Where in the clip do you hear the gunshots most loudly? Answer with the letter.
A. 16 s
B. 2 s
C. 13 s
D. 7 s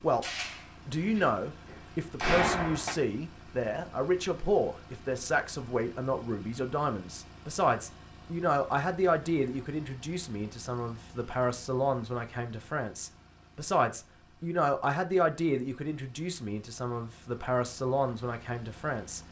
B.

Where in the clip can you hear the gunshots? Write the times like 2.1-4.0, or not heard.
0.2-3.0.